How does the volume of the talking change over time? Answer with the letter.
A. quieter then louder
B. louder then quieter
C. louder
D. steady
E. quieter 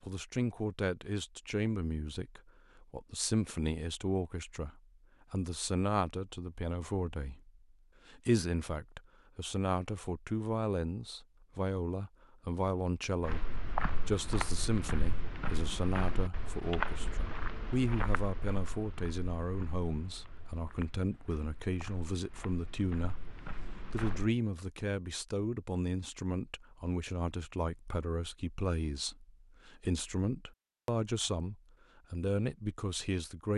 D.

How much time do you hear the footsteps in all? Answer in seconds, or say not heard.
11 s.